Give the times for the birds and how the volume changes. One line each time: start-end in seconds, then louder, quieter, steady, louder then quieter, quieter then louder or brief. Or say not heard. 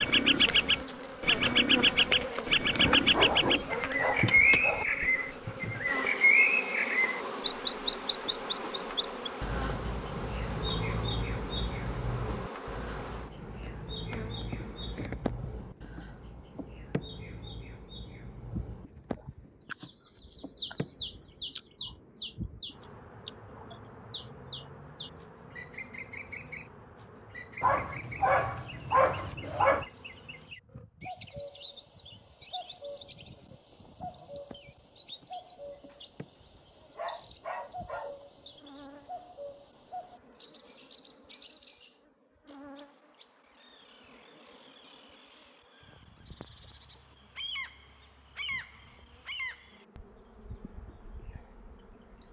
0.0-52.2 quieter.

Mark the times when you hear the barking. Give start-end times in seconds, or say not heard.
2.8-4.8, 27.6-29.9, 35.9-38.2.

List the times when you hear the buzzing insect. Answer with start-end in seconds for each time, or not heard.
0.0-52.2.